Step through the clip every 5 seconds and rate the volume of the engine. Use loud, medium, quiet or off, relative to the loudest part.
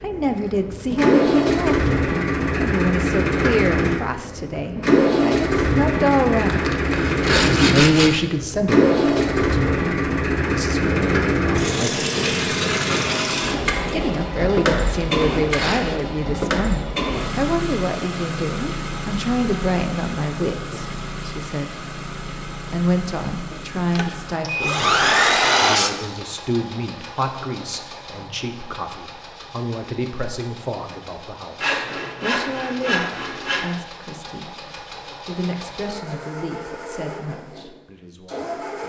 loud, loud, loud, medium, quiet, quiet, quiet, quiet.